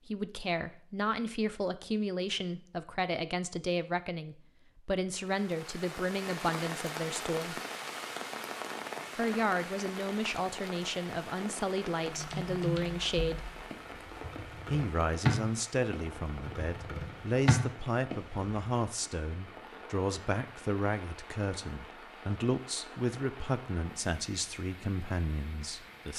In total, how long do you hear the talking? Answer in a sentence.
You can hear the talking for 23 seconds altogether.